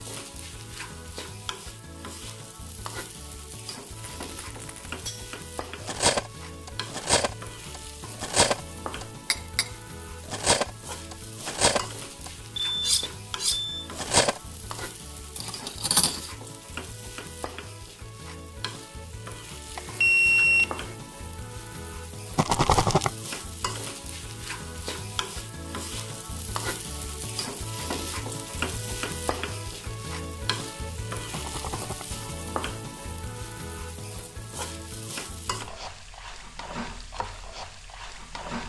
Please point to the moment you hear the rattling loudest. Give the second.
23 s.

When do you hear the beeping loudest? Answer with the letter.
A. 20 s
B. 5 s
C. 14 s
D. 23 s
A.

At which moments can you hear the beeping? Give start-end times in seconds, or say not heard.
12.6-13.9, 19.8-20.9.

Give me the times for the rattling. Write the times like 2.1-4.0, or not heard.
4.0-4.9, 22.4-23.1, 31.3-32.0.